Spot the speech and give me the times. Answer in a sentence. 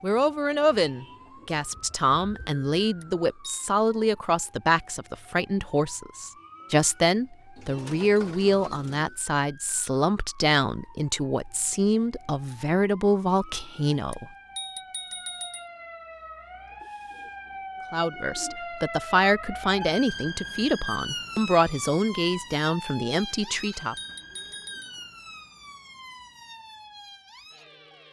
You can hear the speech from 0.0 to 14.2 s and from 17.9 to 23.9 s.